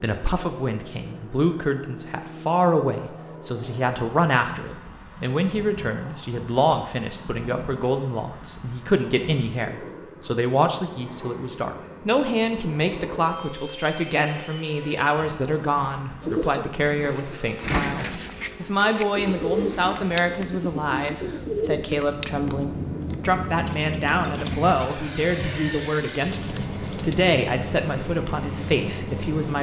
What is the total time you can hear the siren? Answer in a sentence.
The siren can't be heard in this clip.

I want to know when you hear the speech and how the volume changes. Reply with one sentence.
You can hear the speech from 0.0 to 29.5 s, at a steady volume.